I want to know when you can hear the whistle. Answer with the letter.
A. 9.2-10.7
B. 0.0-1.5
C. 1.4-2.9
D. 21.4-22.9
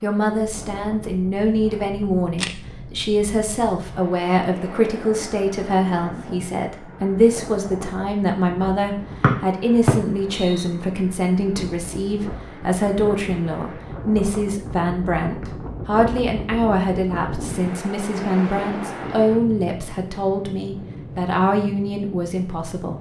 A.